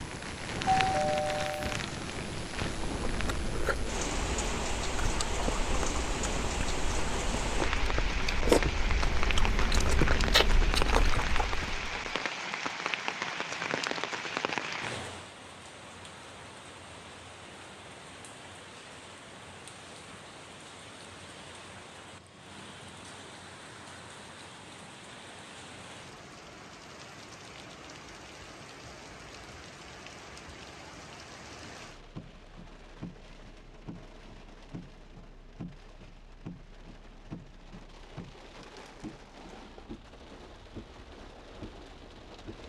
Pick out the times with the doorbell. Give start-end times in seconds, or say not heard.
0.8-1.8.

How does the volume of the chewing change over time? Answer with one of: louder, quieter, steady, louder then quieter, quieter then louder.
louder.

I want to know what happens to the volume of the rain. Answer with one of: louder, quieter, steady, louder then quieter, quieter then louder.
quieter.